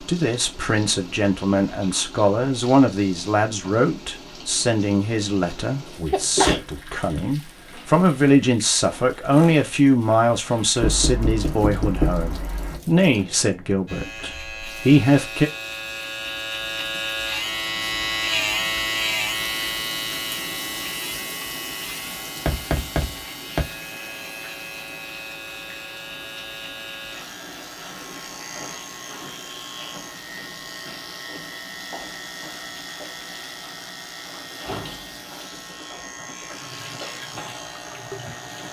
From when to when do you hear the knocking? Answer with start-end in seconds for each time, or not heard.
10.8-12.8, 22.4-23.6.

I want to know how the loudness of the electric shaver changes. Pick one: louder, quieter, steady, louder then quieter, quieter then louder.
quieter.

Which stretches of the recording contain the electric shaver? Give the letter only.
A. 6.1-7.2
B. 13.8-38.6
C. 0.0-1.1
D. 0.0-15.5
B.